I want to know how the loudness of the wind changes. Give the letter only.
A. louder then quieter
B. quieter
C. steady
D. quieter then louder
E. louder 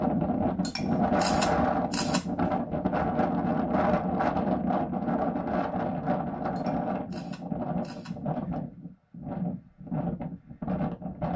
B.